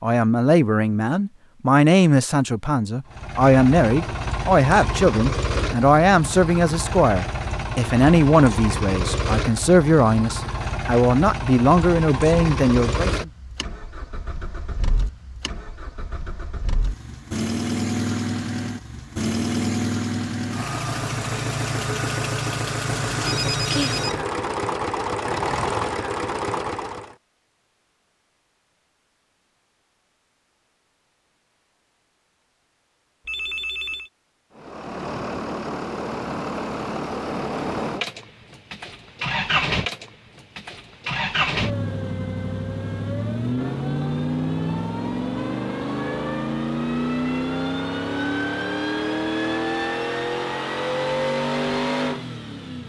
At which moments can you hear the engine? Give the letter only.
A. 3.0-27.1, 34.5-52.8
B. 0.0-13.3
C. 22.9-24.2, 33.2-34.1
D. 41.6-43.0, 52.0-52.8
A.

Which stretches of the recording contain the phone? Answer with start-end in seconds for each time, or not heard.
22.9-24.2, 33.2-34.1.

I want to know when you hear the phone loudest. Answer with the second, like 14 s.
24 s.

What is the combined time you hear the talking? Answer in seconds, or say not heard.
13 s.